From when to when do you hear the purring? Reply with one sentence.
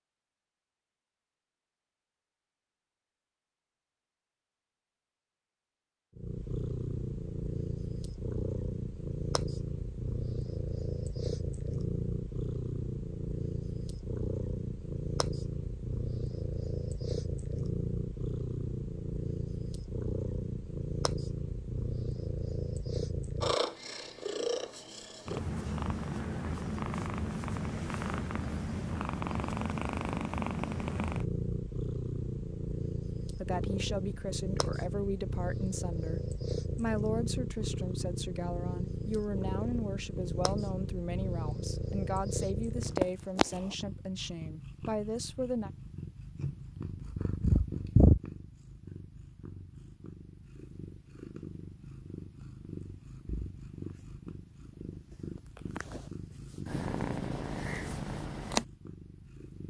You can hear the purring from 6.2 to 59.6 s.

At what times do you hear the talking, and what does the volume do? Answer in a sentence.
You can hear the talking from 33.2 to 45.7 s, at a steady volume.